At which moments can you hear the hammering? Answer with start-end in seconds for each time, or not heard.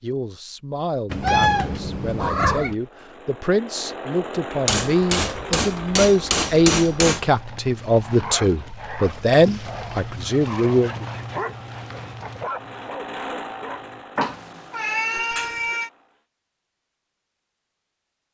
4.7-7.2.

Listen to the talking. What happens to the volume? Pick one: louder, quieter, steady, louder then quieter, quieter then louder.
louder.